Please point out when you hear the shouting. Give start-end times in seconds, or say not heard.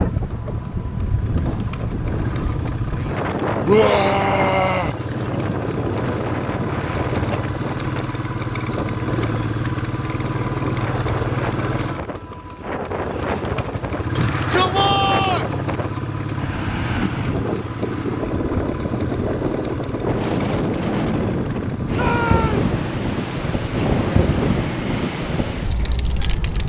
3.6-5.0, 14.2-15.5, 21.9-22.7.